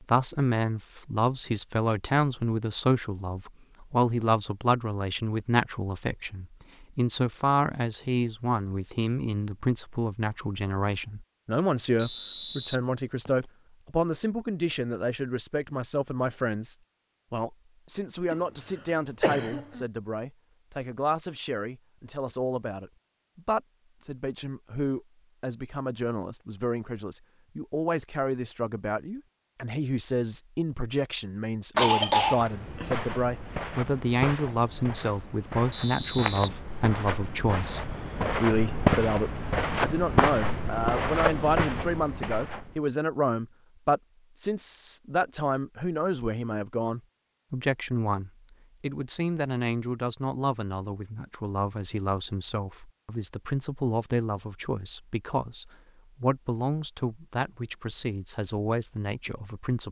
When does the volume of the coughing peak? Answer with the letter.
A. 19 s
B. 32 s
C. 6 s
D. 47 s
B.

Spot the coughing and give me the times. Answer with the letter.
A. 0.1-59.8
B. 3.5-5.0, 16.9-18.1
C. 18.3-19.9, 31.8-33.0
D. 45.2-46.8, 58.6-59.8
C.